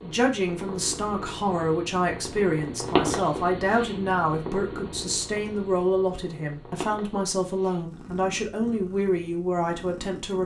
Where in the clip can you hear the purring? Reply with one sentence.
You can hear the purring from 0.0 to 10.4 s.